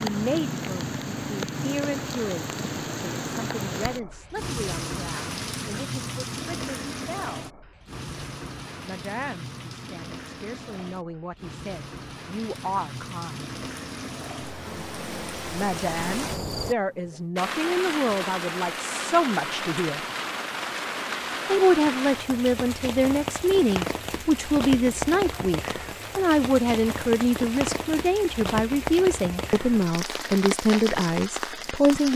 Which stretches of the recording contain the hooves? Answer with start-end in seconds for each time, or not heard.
not heard.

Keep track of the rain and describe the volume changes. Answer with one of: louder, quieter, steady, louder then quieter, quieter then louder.
quieter then louder.